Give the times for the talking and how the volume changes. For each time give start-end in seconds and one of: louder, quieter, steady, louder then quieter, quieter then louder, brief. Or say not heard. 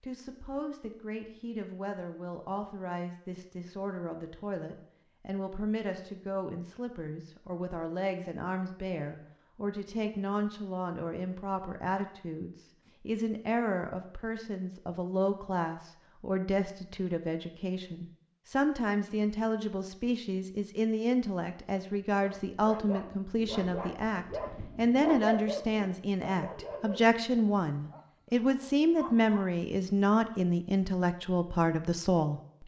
0.0-32.4 louder.